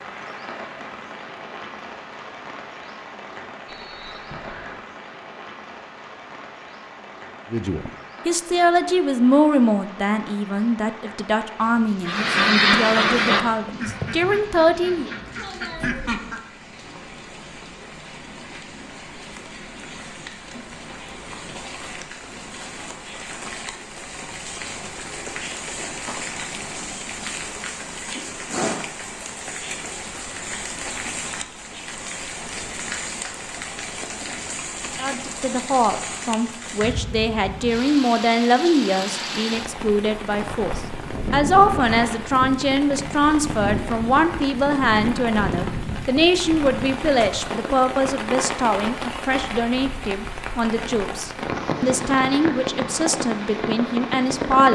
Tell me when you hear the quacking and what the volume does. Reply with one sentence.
You can hear the quacking from 12.1 to 16.4 s, getting quieter then louder.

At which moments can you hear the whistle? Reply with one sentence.
You can hear the whistle from 3.6 to 4.8 s.